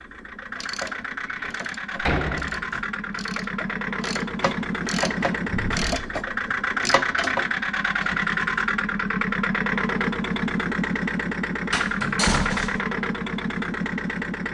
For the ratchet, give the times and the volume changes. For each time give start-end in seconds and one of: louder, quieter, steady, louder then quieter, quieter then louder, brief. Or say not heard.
0.5-8.2 louder.